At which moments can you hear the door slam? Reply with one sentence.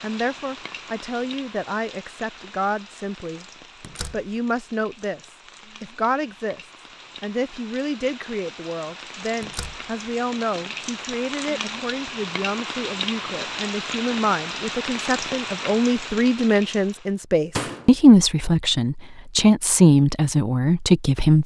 You can hear the door slam from 3.8 to 4.3 s, from 9.4 to 9.8 s and from 17.6 to 18.0 s.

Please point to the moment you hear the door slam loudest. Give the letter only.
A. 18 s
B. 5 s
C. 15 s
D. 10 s
A.